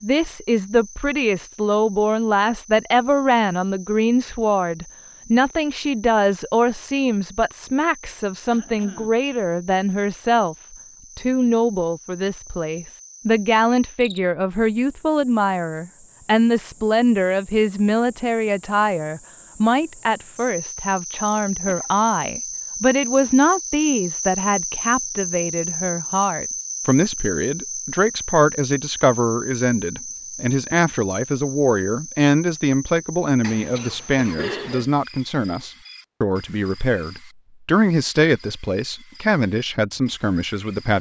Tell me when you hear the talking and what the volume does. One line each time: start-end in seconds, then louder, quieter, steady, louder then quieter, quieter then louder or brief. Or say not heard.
0.0-10.6 steady
11.2-40.9 steady.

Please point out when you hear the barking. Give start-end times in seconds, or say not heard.
not heard.